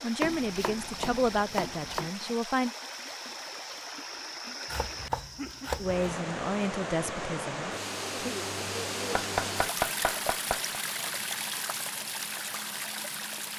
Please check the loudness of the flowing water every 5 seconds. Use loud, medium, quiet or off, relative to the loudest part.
medium, loud, loud.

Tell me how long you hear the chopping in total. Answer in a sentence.
You can hear the chopping for 5 seconds altogether.